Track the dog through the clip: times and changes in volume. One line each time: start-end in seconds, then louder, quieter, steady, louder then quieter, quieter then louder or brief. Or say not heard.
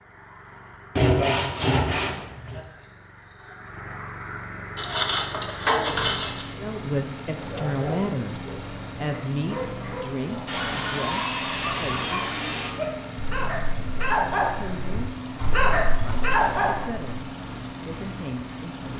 7.3-17.1 louder.